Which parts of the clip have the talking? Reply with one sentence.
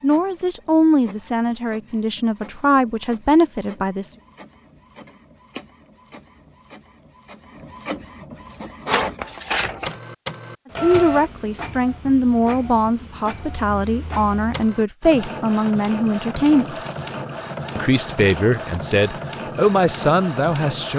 You can hear the talking from 0.0 to 4.2 s, from 10.8 to 16.8 s and from 17.8 to 20.9 s.